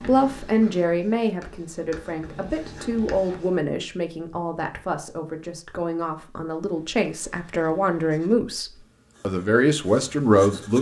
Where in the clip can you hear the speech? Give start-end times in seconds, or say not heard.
0.0-10.7.